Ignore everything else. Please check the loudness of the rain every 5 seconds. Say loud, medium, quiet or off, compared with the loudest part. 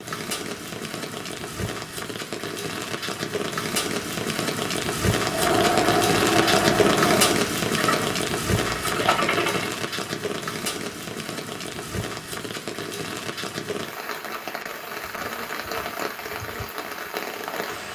medium, loud, medium, medium.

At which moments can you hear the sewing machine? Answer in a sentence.
The sewing machine can be heard from 5.2 to 9.8 s.